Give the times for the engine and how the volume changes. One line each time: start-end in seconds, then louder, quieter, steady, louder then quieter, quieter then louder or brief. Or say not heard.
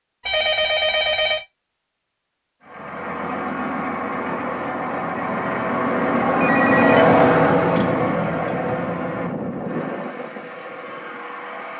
2.6-11.7 louder then quieter.